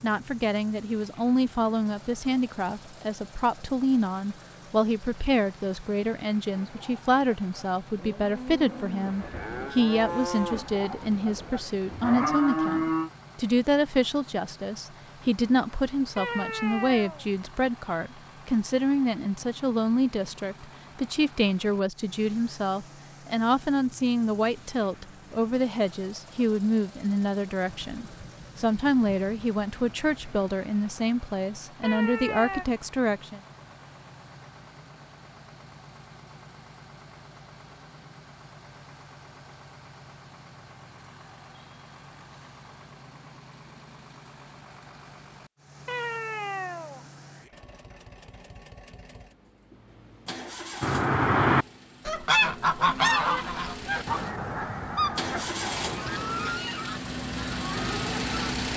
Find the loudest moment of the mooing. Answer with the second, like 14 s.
13 s.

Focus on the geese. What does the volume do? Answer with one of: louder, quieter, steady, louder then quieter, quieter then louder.
quieter.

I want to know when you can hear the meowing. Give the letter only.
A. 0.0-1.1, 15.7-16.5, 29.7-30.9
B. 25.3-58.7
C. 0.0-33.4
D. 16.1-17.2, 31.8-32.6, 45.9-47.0
D.